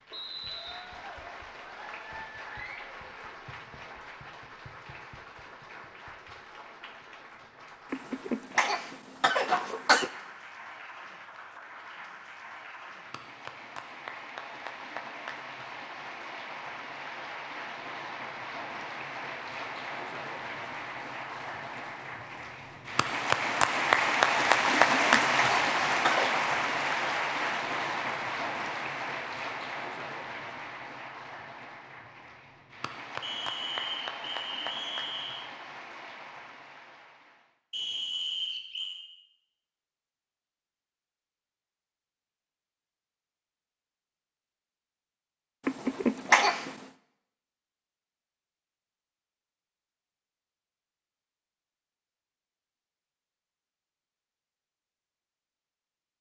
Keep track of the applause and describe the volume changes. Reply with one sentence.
The volume of the applause goes up, then down.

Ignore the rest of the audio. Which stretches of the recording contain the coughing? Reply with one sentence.
The coughing can be heard from 7.9 to 10.1 s, from 24.9 to 26.4 s and from 45.6 to 46.8 s.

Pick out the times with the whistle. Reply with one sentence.
You can hear the whistle from 0.1 to 0.8 s, from 33.2 to 35.5 s and from 37.7 to 39.0 s.